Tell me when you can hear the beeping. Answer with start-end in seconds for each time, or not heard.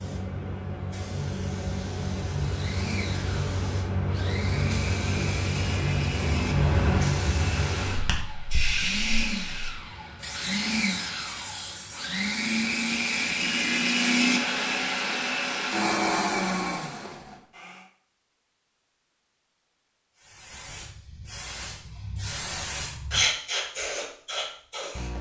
not heard.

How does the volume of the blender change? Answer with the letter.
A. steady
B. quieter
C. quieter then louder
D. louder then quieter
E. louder
E.